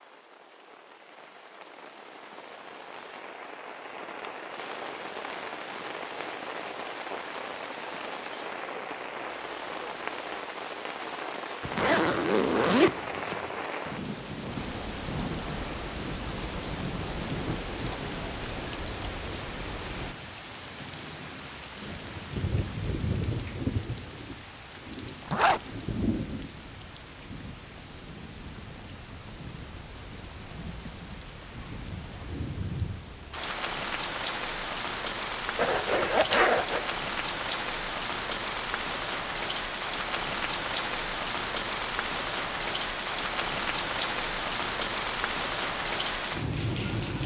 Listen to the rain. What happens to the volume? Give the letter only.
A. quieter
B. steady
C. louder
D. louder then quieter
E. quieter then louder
C.